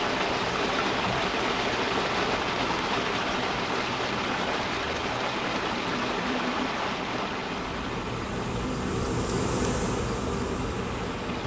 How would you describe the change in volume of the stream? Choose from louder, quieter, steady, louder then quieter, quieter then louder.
quieter.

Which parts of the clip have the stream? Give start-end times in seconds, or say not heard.
0.0-11.4.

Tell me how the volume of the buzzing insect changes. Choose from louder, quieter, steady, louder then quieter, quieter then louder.
louder.